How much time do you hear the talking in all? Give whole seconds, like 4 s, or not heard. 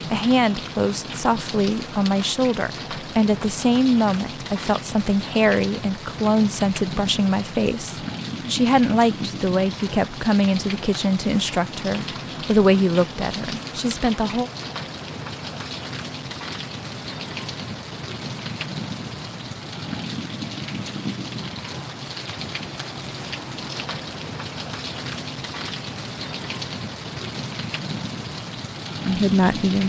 15 s.